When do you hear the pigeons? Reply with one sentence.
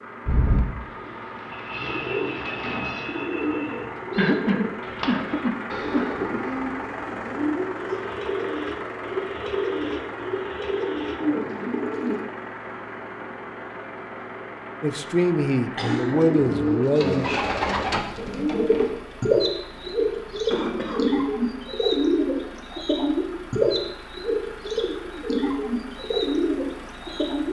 You can hear the pigeons from 0.2 to 12.2 s and from 15.8 to 27.4 s.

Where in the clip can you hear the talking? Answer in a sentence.
The talking can be heard from 14.8 to 17.3 s.